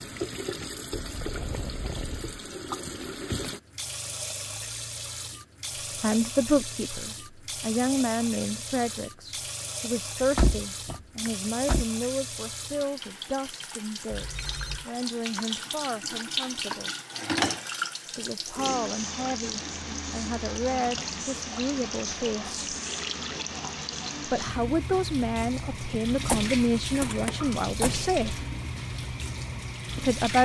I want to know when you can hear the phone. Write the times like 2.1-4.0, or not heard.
14.1-14.8.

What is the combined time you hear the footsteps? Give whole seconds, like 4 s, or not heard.
not heard.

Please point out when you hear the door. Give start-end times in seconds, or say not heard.
10.2-11.8, 26.1-28.2.